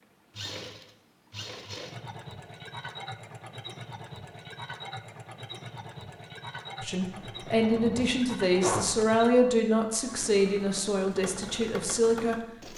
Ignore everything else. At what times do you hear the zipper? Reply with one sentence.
The zipper can be heard from 7.0 to 8.9 s.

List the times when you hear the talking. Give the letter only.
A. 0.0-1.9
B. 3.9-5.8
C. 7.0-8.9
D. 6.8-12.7
D.